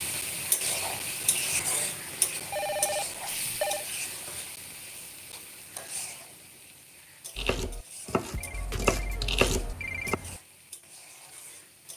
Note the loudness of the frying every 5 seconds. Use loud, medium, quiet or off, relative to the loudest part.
loud, quiet, quiet.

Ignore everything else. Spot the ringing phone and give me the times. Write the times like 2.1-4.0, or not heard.
2.5-3.9, 8.3-10.4.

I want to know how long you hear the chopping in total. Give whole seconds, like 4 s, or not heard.
3 s.